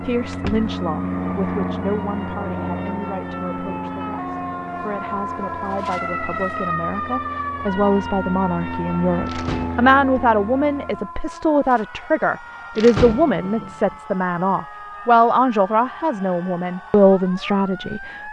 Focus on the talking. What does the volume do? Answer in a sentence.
The volume of the talking goes up.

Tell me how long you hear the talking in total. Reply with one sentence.
The talking can be heard for 18 seconds in total.